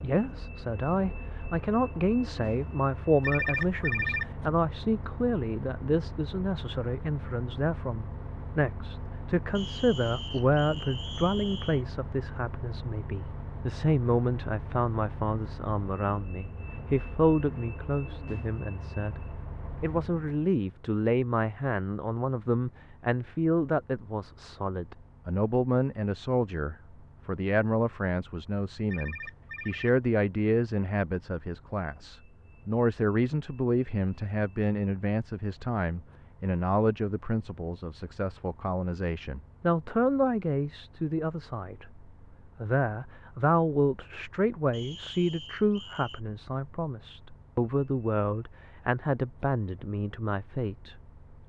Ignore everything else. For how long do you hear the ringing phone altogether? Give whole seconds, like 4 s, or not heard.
2 s.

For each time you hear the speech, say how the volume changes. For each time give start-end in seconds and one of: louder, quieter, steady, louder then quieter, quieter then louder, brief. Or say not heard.
0.0-51.0 steady.